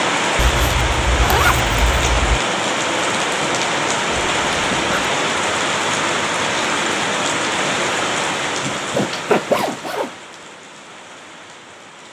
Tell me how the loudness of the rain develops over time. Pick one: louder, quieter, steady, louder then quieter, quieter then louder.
quieter.